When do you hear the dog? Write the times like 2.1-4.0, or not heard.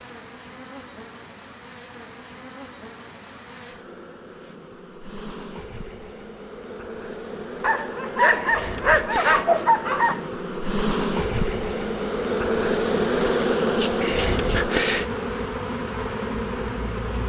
7.6-10.2.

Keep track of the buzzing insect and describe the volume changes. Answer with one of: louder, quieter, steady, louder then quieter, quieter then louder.
louder.